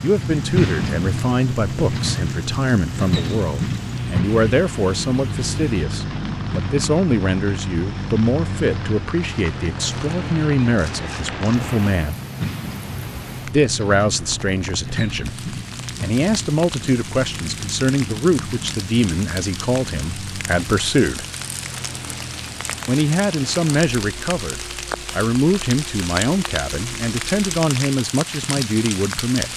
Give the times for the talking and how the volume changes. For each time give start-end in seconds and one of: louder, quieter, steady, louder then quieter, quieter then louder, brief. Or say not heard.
0.0-12.2 steady
13.4-21.2 steady
22.9-29.5 steady.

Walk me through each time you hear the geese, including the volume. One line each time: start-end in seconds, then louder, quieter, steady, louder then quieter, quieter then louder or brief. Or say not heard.
not heard.